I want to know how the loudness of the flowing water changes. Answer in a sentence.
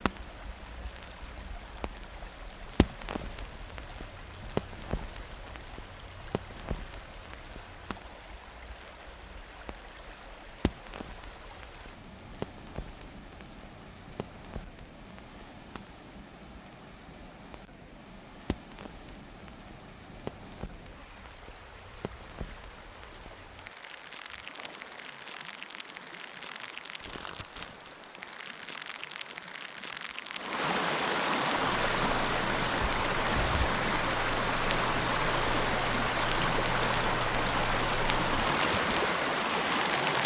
The loudness of the flowing water goes up.